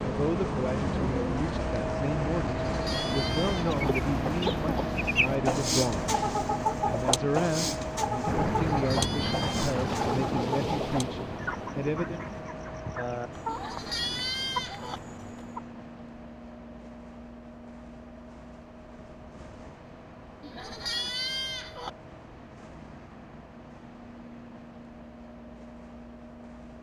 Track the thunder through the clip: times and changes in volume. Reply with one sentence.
The thunder can be heard from 8.2 to 12.4 s, getting quieter.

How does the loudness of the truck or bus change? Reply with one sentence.
The loudness of the truck or bus goes down.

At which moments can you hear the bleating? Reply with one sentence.
The bleating can be heard from 2.6 to 3.8 s, from 8.7 to 9.8 s, from 13.4 to 15.0 s and from 20.4 to 21.9 s.